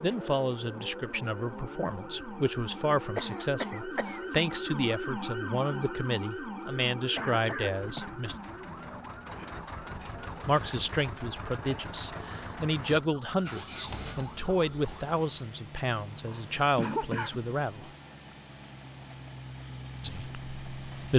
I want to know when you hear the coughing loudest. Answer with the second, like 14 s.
17 s.